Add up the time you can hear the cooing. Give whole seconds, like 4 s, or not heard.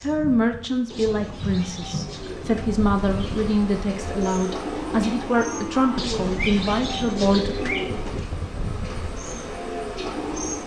5 s.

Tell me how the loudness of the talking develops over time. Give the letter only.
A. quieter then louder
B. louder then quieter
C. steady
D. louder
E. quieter
C.